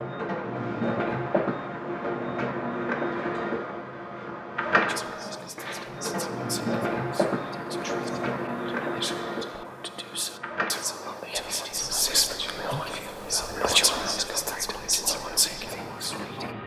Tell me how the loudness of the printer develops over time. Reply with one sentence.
The loudness of the printer goes down.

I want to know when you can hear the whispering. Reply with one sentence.
You can hear the whispering from 4.8 to 16.6 s.